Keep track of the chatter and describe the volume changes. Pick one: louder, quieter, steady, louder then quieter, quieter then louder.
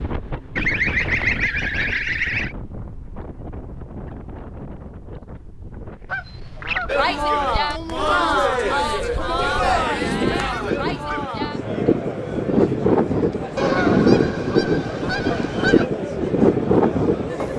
quieter.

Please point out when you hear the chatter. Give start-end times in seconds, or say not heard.
6.8-17.5.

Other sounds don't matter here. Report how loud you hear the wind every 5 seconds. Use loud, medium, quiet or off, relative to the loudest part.
quiet, quiet, loud, loud.